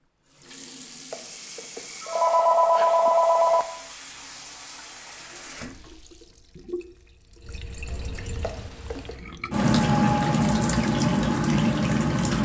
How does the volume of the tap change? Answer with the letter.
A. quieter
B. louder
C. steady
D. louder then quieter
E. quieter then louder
B.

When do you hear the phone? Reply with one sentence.
The phone can be heard from 1.1 to 3.6 s and from 8.4 to 9.2 s.